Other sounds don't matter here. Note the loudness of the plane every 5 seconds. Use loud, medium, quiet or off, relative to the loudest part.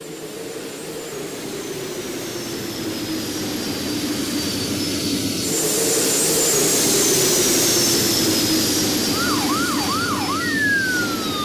medium, loud, medium.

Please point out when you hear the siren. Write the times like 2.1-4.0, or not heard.
9.1-11.4.